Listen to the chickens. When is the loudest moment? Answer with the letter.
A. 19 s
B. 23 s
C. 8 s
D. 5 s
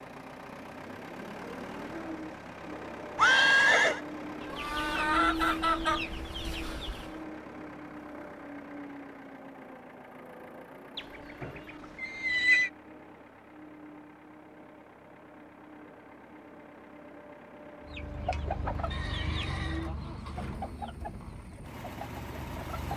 D.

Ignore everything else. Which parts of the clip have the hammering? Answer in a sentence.
The hammering can't be heard in this clip.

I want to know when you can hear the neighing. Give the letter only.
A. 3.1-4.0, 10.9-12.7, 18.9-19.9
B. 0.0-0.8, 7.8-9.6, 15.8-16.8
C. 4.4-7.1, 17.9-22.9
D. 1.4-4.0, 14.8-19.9
A.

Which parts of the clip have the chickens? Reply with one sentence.
The chickens can be heard from 4.4 to 7.1 s and from 17.9 to 22.9 s.